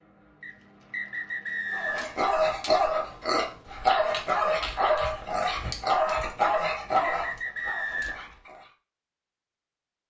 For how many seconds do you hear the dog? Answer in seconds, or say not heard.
7 s.